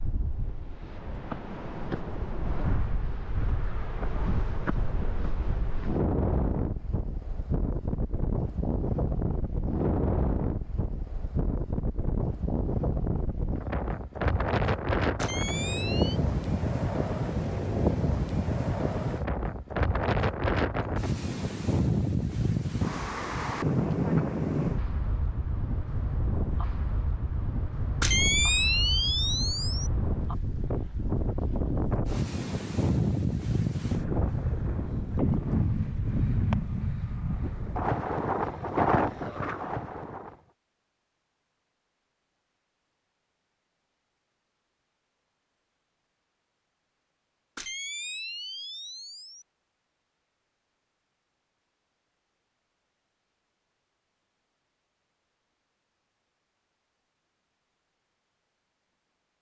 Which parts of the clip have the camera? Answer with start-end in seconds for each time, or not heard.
15.2-16.2, 28.0-29.9, 47.5-49.5.